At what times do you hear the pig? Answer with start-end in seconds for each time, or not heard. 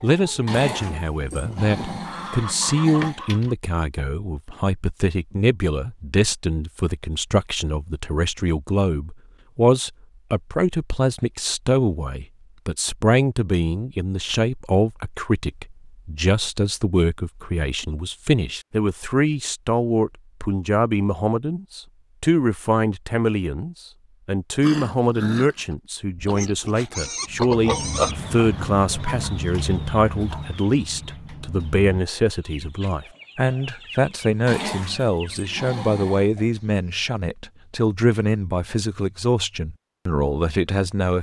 26.1-28.1.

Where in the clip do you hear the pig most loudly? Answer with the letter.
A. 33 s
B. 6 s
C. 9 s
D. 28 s
D.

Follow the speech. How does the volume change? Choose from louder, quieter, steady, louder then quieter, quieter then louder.
steady.